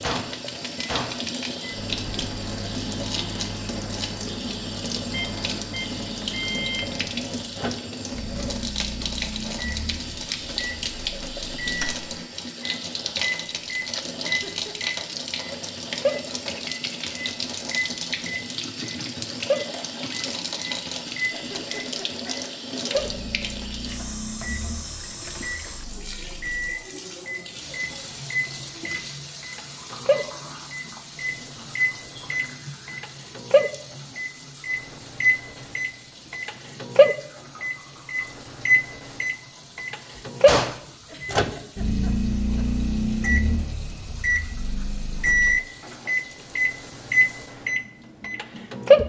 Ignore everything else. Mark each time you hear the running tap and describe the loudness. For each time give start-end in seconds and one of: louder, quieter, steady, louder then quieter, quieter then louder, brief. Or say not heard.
0.0-49.0 quieter.